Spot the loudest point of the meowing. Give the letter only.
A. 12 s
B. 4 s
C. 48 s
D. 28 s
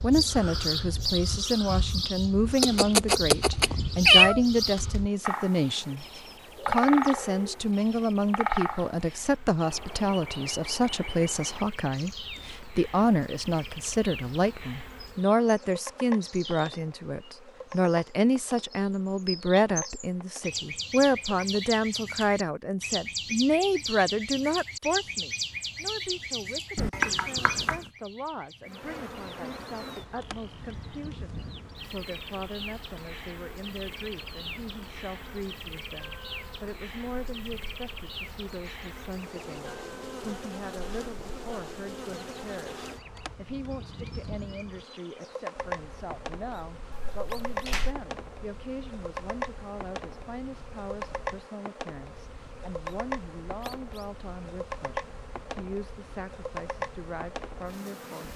B.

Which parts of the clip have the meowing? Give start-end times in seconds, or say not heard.
2.6-4.4, 26.8-27.8, 46.9-48.0.